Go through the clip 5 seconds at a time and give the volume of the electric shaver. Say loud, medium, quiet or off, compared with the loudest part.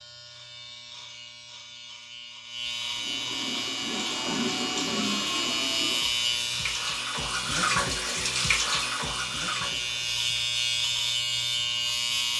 medium, loud, loud.